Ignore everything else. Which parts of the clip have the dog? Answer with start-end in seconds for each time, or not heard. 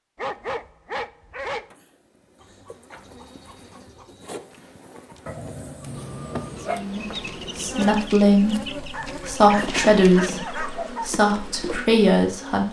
0.1-1.7, 5.2-6.8, 8.9-11.1.